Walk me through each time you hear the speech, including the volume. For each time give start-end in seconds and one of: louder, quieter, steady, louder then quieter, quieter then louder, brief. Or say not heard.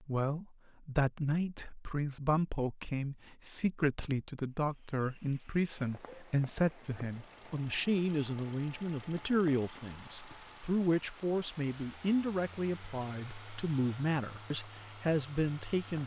0.0-16.0 steady.